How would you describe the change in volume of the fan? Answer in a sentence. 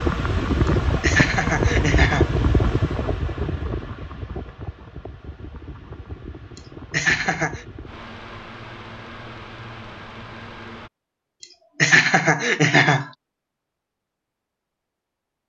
The volume of the fan goes down.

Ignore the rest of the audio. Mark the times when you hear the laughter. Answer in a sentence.
The laughter can be heard from 0.7 to 2.4 s, from 6.5 to 7.7 s and from 11.4 to 13.1 s.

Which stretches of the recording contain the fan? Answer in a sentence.
The fan can be heard from 0.0 to 10.9 s.